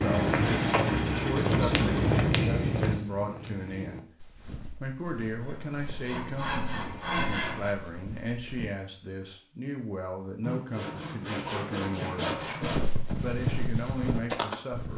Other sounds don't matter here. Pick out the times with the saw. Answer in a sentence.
The saw can be heard from 0.3 to 2.1 s, from 5.3 to 7.8 s and from 10.4 to 12.9 s.